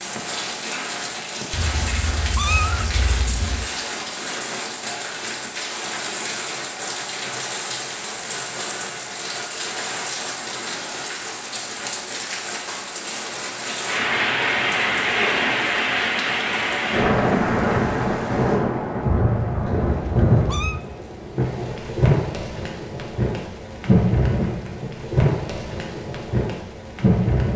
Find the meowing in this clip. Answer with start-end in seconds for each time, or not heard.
1.5-3.7, 19.6-20.8.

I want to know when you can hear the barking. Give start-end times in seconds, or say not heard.
not heard.